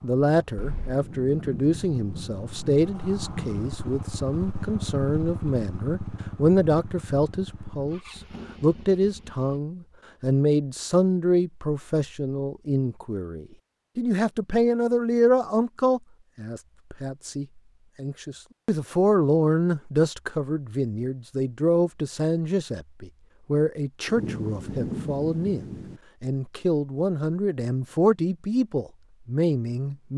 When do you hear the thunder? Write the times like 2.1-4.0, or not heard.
0.6-3.6, 24.1-26.0.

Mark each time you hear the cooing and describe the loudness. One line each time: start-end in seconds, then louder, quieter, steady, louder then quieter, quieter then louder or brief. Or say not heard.
not heard.